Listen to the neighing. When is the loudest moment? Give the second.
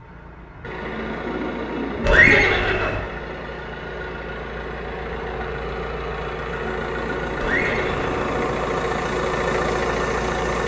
2 s.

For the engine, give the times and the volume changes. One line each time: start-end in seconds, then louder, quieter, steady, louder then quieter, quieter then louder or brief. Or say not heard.
0.0-10.6 louder.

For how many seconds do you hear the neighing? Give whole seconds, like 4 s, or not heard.
2 s.